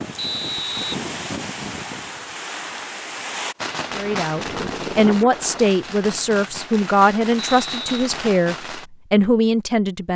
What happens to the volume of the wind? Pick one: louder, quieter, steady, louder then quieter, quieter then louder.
steady.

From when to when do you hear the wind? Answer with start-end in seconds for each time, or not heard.
0.0-5.8.